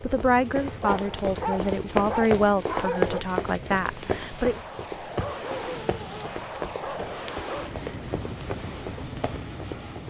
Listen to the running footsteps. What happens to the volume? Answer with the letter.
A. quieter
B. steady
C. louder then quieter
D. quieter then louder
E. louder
A.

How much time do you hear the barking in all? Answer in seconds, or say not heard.
5 s.